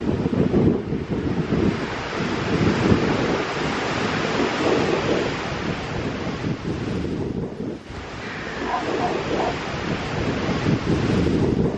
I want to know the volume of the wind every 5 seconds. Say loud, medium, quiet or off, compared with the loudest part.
loud, medium, loud.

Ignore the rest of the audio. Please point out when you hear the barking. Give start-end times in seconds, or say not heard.
7.8-9.6.